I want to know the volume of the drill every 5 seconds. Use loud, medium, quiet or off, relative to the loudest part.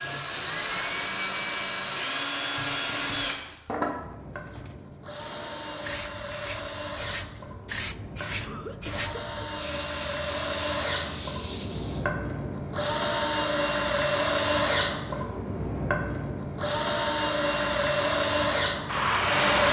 medium, medium, loud, loud.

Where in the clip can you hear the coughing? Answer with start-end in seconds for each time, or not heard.
8.4-9.4.